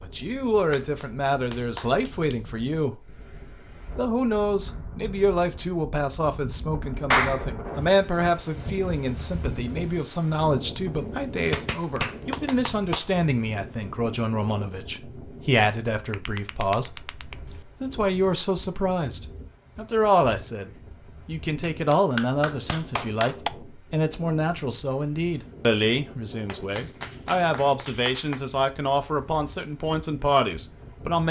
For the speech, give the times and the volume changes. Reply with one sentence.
You can hear the speech from 0.0 to 31.2 s, at a steady volume.